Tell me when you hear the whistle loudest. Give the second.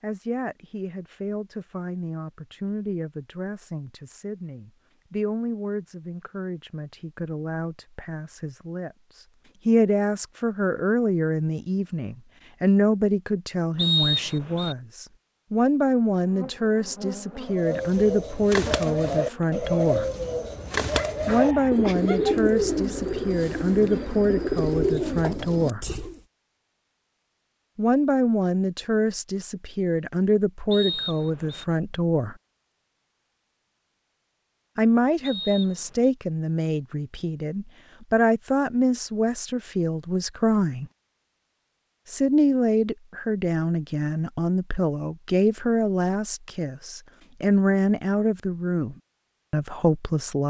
14 s.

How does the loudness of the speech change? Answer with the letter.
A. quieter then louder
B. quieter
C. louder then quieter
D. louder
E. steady
D.